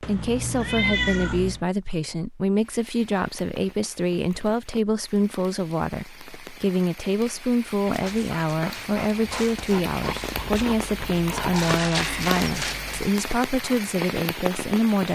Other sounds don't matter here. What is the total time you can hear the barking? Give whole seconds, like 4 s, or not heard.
5 s.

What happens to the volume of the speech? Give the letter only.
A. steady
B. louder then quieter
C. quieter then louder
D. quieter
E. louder
A.